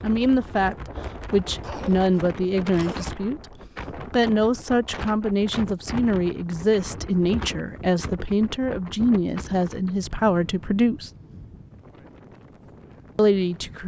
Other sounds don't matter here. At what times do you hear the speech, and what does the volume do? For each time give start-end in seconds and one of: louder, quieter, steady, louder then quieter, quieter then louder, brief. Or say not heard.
0.0-11.1 steady
13.2-13.8 brief.